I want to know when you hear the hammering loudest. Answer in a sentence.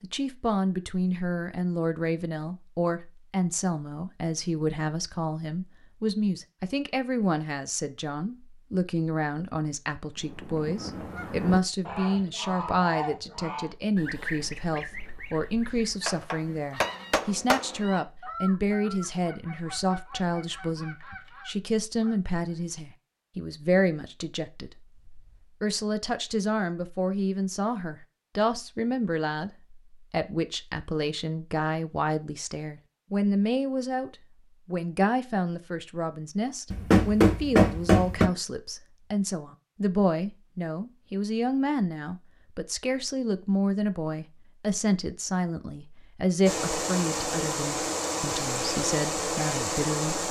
The volume of the hammering peaks at 37 seconds.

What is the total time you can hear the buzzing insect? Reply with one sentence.
The buzzing insect can be heard for 4 seconds in total.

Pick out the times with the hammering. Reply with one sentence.
The hammering can be heard from 16.1 to 17.9 s and from 36.7 to 38.3 s.